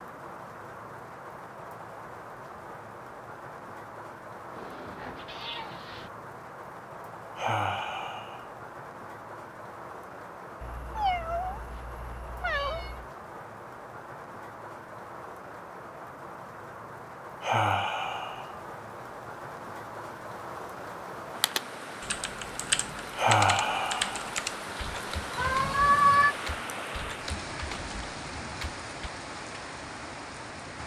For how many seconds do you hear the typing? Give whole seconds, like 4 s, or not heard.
8 s.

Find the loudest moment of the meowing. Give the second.
26 s.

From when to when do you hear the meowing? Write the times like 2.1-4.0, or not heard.
4.5-6.1, 10.6-13.1, 25.4-26.4.